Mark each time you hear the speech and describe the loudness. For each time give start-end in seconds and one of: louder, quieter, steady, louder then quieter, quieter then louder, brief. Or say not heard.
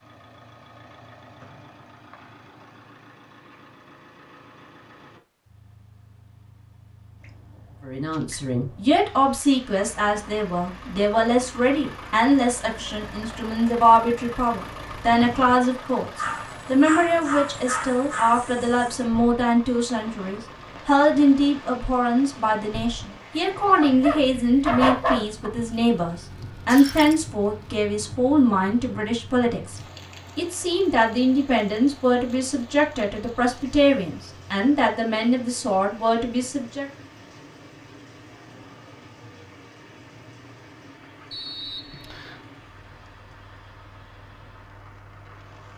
7.8-36.9 steady.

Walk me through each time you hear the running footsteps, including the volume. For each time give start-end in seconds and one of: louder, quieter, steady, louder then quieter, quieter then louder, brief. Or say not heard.
not heard.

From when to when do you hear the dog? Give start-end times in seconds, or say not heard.
16.1-18.9, 23.6-25.5.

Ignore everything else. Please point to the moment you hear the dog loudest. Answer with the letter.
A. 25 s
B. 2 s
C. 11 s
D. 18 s
A.